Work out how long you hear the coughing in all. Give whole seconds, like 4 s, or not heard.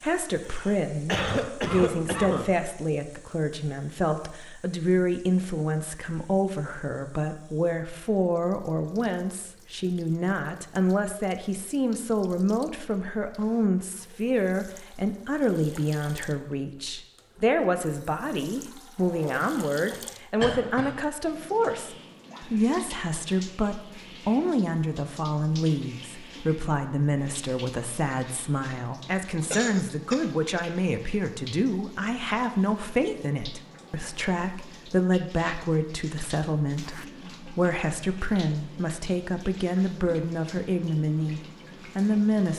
4 s.